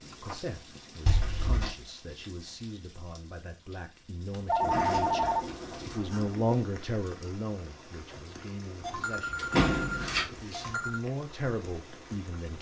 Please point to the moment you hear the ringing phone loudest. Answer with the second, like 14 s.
5 s.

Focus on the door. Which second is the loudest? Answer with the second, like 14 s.
10 s.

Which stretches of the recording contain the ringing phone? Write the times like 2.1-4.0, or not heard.
0.1-0.8, 4.3-5.5, 8.8-11.0.